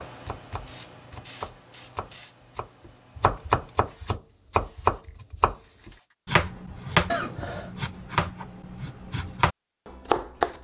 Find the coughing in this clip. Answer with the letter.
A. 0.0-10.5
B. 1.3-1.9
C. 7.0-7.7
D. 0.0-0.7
C.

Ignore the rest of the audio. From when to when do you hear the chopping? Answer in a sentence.
You can hear the chopping from 0.0 to 10.5 s.